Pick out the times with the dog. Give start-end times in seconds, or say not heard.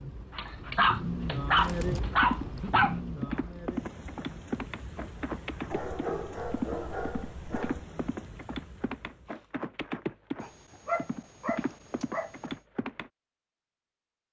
0.3-3.0, 5.7-7.8, 10.4-12.3.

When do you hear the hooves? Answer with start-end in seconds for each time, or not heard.
1.6-13.1.